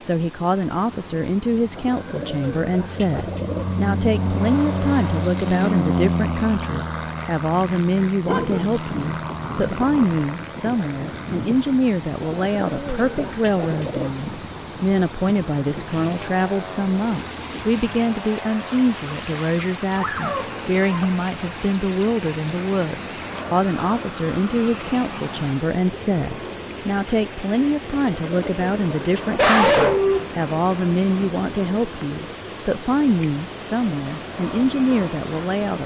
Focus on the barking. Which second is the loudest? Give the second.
30 s.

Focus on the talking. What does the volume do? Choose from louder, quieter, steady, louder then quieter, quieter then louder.
steady.